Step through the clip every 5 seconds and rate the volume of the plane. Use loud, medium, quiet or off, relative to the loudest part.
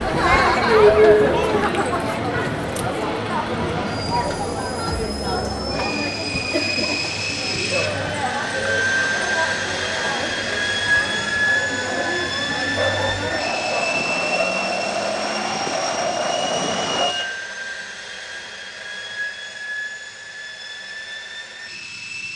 medium, loud, loud, medium, medium.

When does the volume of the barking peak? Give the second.
13 s.